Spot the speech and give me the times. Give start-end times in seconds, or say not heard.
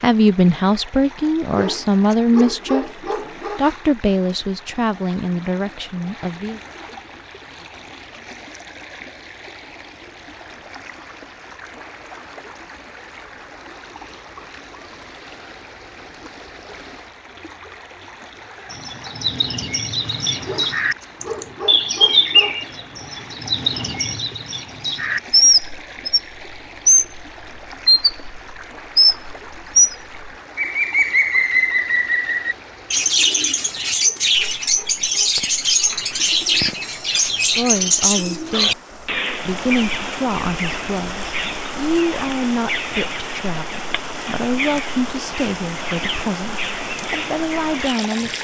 0.0-6.6, 37.5-38.8, 39.5-48.4.